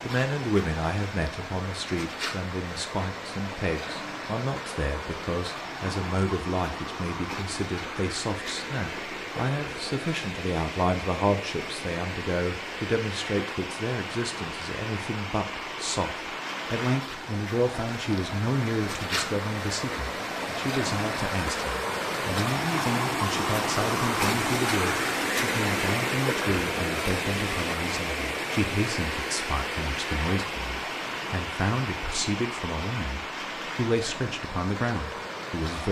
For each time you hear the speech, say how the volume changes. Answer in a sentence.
You can hear the speech from 0.0 to 35.8 s, at a steady volume.